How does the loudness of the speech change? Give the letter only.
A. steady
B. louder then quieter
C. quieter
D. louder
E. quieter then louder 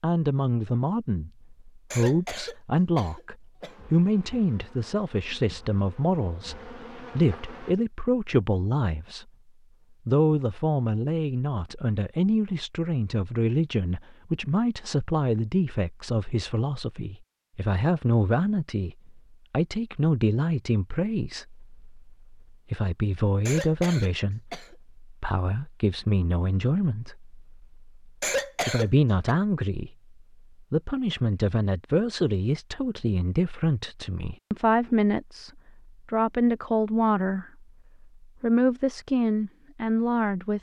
A.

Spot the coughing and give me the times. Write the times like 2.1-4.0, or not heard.
1.9-3.8, 23.4-24.8, 28.2-29.4.